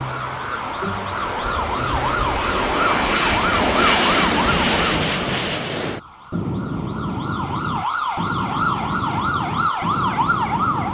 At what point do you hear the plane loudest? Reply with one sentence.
The volume of the plane peaks at 4 seconds.